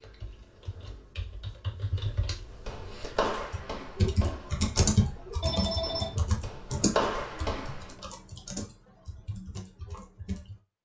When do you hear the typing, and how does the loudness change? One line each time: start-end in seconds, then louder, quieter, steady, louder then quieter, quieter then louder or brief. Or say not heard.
0.0-10.6 louder then quieter.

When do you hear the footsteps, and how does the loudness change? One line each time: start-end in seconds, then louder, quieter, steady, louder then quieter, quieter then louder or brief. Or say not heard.
2.5-8.0 quieter then louder.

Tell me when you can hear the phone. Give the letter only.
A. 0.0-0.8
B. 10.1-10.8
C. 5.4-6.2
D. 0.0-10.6
C.